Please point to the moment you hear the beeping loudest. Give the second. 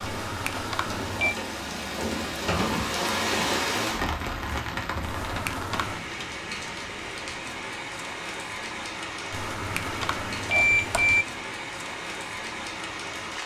11 s.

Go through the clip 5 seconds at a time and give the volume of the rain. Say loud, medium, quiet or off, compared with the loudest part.
loud, medium, medium.